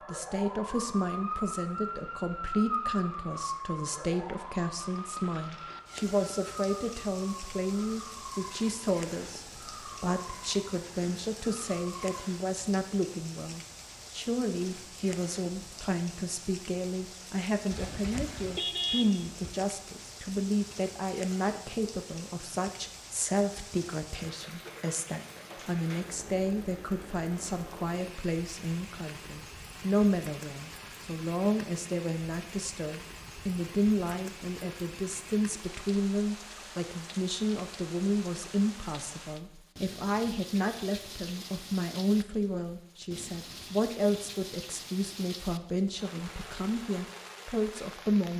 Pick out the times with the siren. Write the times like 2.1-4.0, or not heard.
0.0-12.2.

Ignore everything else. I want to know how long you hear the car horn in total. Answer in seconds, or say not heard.
2 s.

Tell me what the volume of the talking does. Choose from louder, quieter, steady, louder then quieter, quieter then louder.
steady.